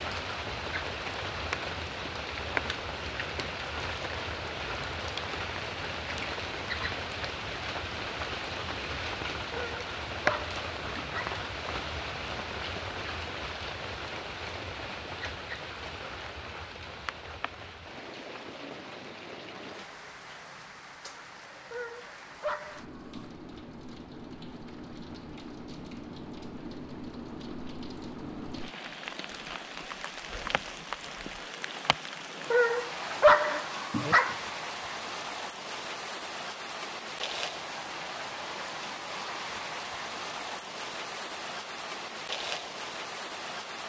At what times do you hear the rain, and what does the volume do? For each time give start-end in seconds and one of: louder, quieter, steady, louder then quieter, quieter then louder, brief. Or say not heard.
0.0-43.8 quieter then louder.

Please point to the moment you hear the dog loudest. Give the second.
33 s.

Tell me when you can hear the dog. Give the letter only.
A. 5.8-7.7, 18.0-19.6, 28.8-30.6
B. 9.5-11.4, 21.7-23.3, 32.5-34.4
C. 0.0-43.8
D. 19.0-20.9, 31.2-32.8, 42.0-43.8
B.